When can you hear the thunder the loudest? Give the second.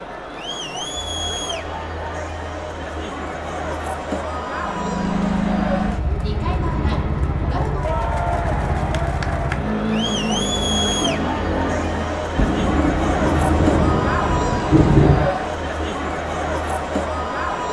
15 s.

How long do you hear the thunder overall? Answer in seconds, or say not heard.
3 s.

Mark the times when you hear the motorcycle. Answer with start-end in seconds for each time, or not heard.
4.6-12.3.